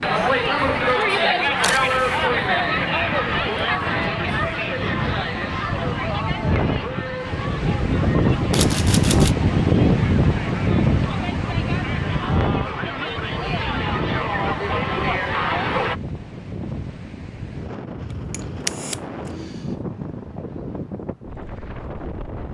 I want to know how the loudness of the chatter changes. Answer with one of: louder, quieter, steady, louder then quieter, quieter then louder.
quieter then louder.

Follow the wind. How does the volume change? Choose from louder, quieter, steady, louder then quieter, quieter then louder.
louder then quieter.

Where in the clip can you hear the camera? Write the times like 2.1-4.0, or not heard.
1.6-2.2, 8.5-9.3, 18.3-19.6.